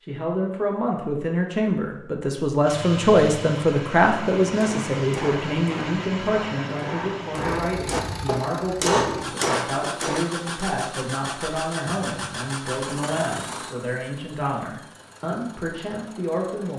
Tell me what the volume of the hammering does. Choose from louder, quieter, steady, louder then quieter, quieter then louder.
louder.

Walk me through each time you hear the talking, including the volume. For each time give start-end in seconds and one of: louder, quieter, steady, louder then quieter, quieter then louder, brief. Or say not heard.
0.0-16.7 quieter.